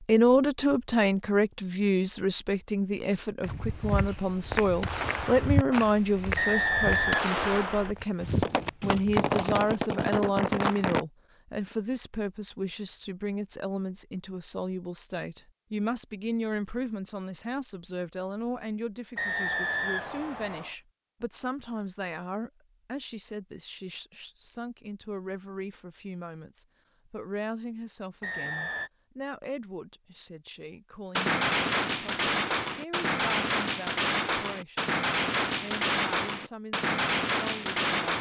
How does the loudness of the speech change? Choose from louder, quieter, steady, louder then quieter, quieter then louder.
quieter.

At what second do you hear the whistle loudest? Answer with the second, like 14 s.
7 s.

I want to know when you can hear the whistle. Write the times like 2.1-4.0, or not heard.
6.3-7.3, 19.1-20.8, 28.2-28.9.